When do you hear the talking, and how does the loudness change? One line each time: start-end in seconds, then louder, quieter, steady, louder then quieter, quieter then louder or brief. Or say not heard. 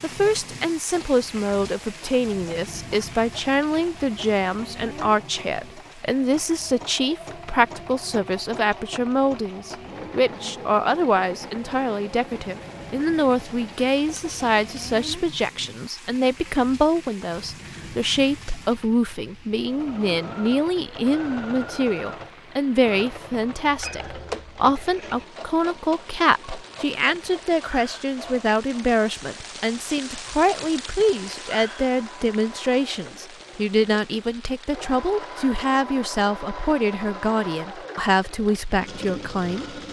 0.0-39.8 steady.